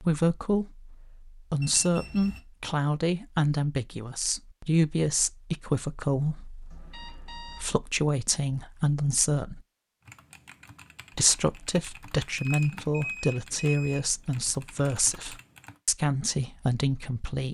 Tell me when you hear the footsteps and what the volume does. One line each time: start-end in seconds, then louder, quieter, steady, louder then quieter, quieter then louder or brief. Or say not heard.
not heard.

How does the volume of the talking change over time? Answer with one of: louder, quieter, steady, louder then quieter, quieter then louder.
steady.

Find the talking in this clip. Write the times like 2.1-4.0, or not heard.
0.0-9.7, 11.2-17.4.